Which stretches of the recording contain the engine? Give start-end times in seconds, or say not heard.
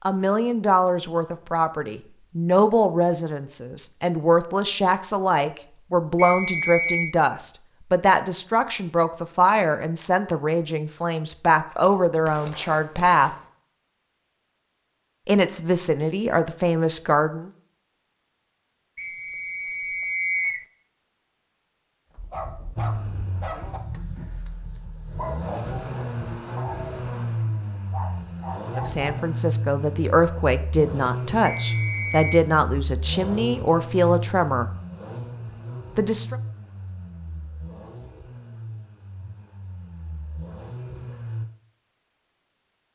22.8-41.5.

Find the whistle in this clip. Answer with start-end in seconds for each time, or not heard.
6.2-7.2, 18.9-20.6, 31.4-32.4.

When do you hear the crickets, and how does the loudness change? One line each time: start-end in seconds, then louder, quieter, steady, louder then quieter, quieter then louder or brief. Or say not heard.
not heard.